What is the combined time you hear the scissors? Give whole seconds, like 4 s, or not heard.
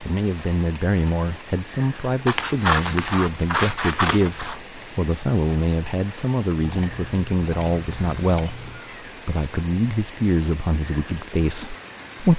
5 s.